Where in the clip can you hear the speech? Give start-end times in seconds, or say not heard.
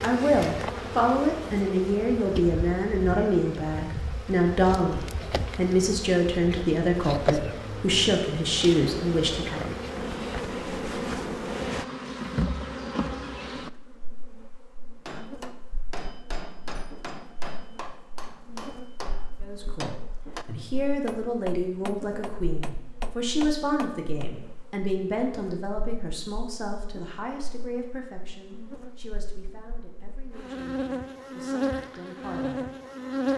0.0-9.7, 19.4-32.7.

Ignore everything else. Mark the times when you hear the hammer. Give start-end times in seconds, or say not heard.
15.1-24.3.